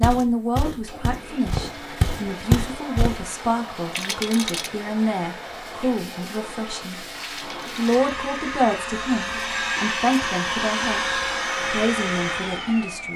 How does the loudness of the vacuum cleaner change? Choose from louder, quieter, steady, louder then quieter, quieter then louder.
louder.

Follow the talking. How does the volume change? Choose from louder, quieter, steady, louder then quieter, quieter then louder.
steady.